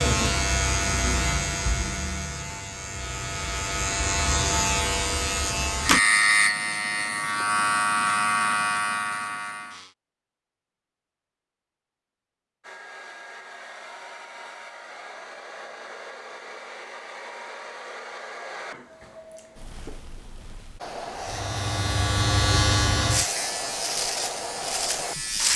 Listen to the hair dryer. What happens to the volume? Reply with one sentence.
The volume of the hair dryer goes up.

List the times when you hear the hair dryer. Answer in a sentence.
You can hear the hair dryer from 12.6 to 25.5 s.